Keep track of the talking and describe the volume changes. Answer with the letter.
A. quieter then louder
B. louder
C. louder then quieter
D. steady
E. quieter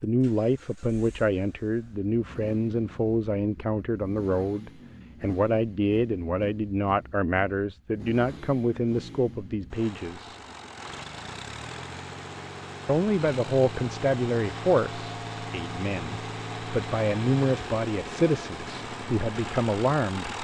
D.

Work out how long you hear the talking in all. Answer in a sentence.
The talking can be heard for 18 seconds in total.